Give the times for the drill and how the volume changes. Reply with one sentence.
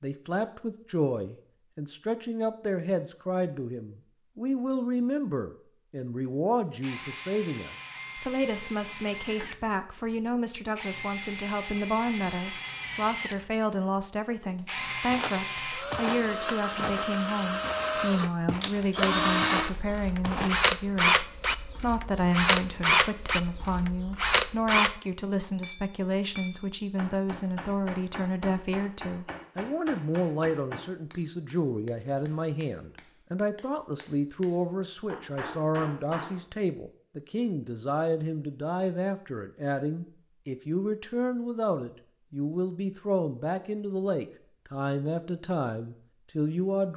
The drill can be heard from 6.6 to 24.9 s, getting louder.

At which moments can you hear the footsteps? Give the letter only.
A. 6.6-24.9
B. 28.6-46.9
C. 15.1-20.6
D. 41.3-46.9
C.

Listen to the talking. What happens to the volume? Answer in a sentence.
The volume of the talking stays about the same.